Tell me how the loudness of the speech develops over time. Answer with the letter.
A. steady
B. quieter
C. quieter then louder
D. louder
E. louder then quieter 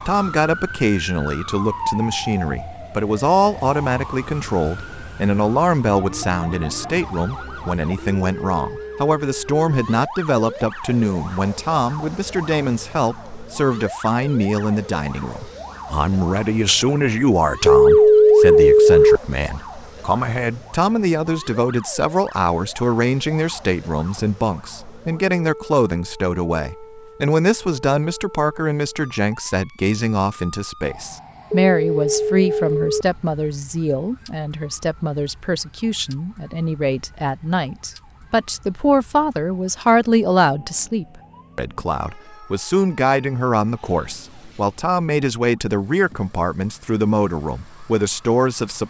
A.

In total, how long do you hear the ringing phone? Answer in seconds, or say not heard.
3 s.